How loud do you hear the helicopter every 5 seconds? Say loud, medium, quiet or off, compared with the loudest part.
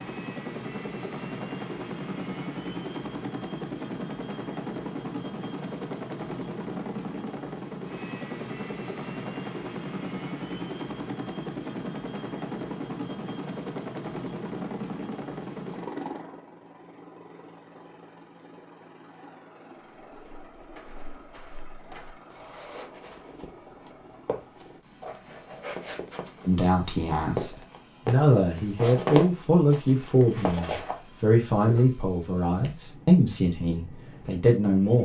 loud, loud, loud, medium, quiet, quiet, quiet.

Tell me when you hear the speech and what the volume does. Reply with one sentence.
You can hear the speech from 26.4 to 35.0 s, at a steady volume.